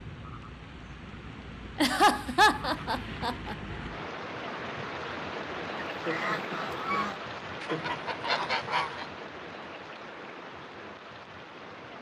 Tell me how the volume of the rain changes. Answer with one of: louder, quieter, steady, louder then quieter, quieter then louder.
louder then quieter.